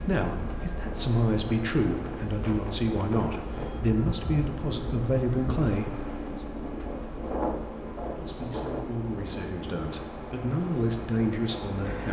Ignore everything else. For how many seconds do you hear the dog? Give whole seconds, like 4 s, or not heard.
not heard.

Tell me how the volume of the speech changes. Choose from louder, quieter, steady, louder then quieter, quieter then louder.
quieter then louder.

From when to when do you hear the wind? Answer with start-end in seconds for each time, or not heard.
0.0-12.0.